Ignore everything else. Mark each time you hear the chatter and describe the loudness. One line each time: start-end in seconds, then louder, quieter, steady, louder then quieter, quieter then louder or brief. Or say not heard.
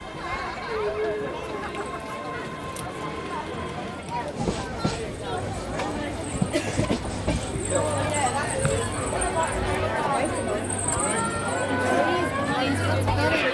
0.0-13.5 louder.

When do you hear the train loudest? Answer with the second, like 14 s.
7 s.